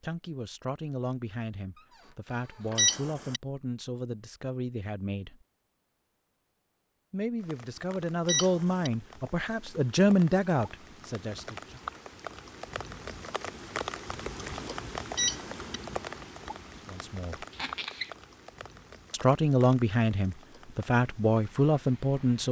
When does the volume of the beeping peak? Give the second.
3 s.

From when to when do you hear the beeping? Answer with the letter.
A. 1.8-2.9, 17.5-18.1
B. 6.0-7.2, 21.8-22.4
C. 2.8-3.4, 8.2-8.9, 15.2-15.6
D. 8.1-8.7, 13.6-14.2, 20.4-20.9
C.